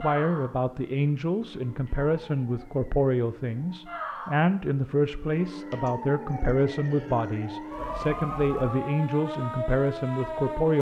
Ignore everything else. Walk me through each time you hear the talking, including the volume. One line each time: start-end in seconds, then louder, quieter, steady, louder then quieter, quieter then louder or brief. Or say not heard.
0.0-10.7 steady.